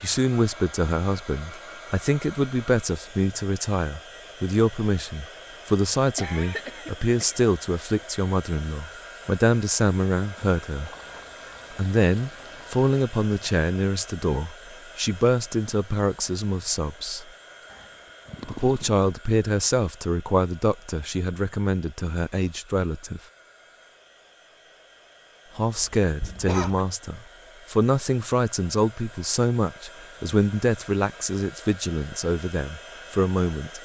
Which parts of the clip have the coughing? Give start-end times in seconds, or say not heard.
6.2-7.4, 25.8-26.9.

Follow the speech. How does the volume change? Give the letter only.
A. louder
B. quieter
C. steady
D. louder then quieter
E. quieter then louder
C.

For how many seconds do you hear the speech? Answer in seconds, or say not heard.
29 s.